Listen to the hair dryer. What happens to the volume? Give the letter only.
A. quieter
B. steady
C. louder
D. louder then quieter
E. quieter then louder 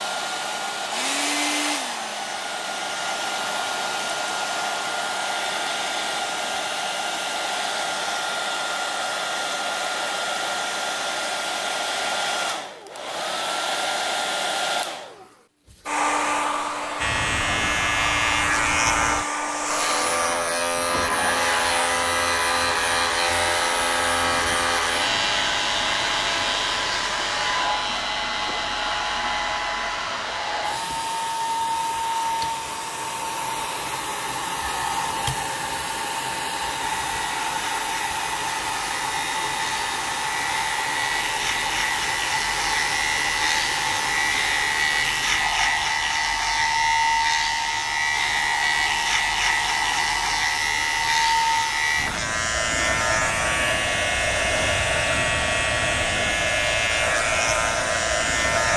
B.